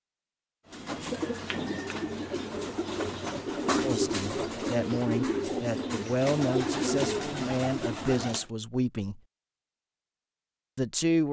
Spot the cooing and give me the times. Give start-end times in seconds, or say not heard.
0.7-8.4.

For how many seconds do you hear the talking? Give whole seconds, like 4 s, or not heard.
6 s.